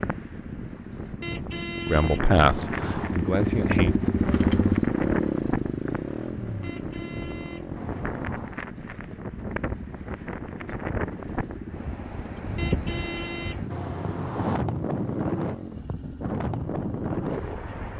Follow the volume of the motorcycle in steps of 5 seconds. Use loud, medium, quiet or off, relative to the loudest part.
loud, medium, quiet, quiet.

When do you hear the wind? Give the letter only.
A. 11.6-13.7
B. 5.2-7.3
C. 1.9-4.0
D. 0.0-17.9
D.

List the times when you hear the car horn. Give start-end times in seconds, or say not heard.
1.2-3.1, 6.6-8.6, 12.6-14.6.